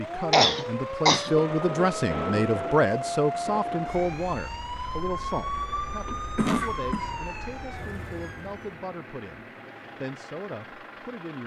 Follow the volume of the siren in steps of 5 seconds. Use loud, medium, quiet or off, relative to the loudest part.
loud, loud, off.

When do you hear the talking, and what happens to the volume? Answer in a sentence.
The talking can be heard from 0.0 to 11.4 s, getting quieter.